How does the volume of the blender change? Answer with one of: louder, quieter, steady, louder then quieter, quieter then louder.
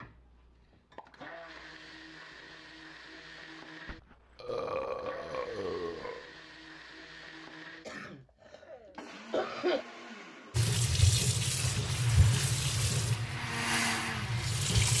louder.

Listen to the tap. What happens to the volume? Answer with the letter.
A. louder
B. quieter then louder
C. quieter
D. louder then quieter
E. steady
C.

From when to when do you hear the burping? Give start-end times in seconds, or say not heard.
3.9-6.3.